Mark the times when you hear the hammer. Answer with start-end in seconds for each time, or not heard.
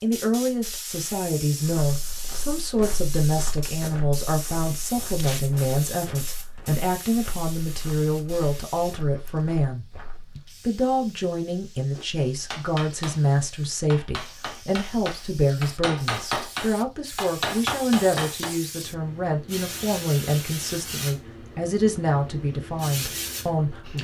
11.9-18.6.